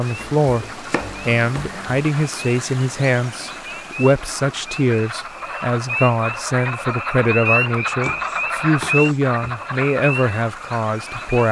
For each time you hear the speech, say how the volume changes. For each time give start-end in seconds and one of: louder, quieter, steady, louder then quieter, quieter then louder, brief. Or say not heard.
0.0-11.4 steady.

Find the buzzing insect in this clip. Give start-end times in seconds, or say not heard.
not heard.